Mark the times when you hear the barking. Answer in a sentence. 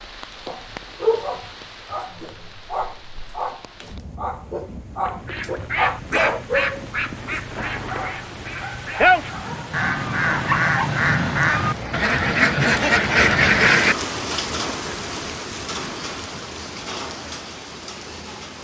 You can hear the barking from 0.5 to 10.9 s.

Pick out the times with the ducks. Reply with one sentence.
The ducks can be heard from 5.0 to 13.9 s.